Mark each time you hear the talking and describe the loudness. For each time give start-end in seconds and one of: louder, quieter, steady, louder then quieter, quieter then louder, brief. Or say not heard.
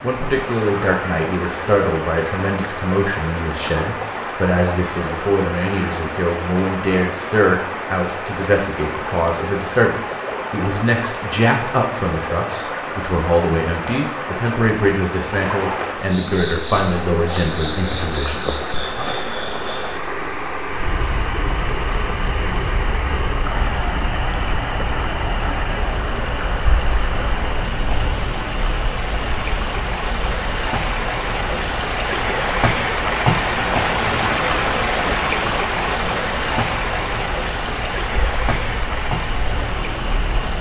0.0-19.1 steady.